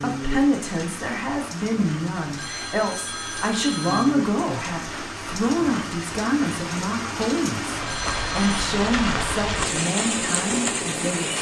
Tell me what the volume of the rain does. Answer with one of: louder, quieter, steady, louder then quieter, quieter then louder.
louder.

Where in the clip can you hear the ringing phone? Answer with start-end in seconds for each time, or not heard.
2.4-4.2, 7.8-8.7.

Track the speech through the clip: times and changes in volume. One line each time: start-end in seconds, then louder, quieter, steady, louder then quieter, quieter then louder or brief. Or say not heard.
0.0-11.3 steady.